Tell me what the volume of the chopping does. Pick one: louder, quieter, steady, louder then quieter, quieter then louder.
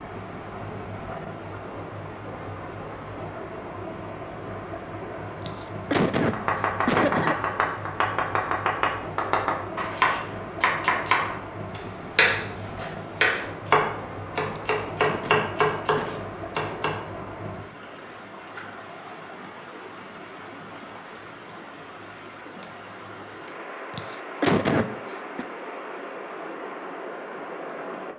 steady.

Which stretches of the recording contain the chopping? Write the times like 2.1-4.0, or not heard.
6.3-16.9.